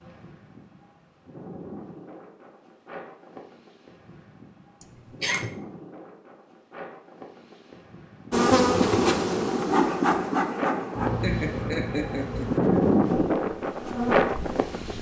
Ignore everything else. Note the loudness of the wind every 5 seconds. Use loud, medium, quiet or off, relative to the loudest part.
quiet, quiet, loud.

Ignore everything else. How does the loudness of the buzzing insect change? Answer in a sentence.
The volume of the buzzing insect goes down.